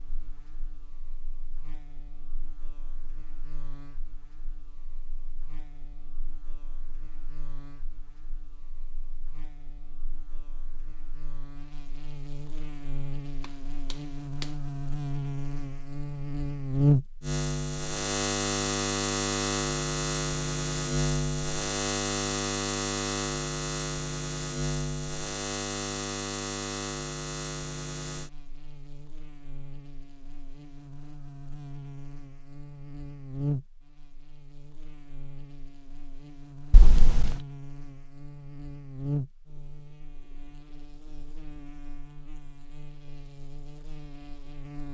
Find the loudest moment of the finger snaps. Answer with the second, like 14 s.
37 s.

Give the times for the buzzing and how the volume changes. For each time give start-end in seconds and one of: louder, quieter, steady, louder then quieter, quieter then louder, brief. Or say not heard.
0.0-44.8 louder then quieter.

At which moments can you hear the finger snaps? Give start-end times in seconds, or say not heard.
13.4-14.5, 36.7-37.4.